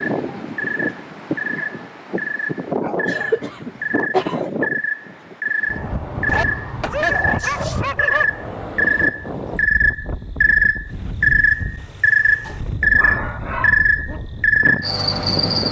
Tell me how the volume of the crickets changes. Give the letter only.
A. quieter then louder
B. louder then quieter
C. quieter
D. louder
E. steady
D.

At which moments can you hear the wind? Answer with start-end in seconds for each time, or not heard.
0.0-15.6.